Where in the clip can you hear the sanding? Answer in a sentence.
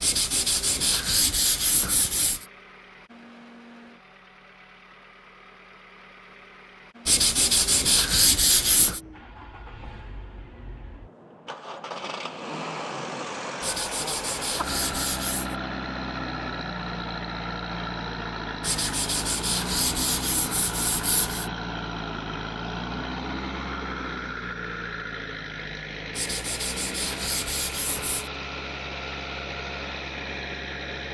The sanding can be heard from 0.0 to 2.5 s, from 7.0 to 9.0 s, from 13.6 to 15.6 s, from 18.6 to 21.5 s and from 26.1 to 28.3 s.